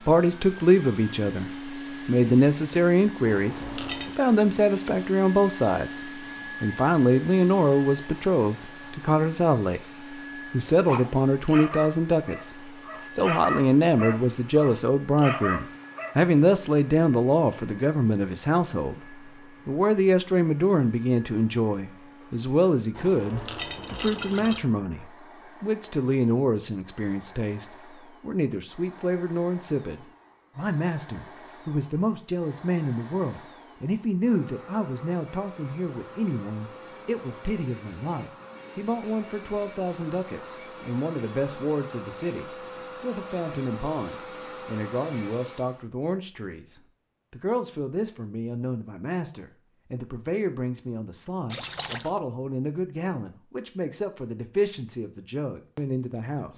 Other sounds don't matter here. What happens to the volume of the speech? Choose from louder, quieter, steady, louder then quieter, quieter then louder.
quieter.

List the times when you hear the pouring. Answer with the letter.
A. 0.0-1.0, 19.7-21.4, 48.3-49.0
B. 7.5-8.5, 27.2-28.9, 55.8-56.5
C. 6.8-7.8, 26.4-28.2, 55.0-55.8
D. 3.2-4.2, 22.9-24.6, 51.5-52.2
D.